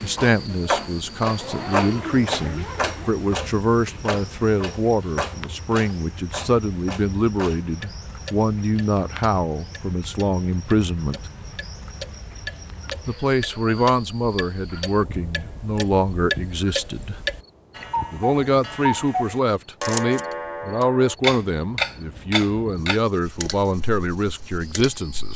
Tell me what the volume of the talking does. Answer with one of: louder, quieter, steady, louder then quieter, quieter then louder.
steady.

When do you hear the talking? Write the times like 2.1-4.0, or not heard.
0.0-11.2, 13.1-17.2, 18.1-25.3.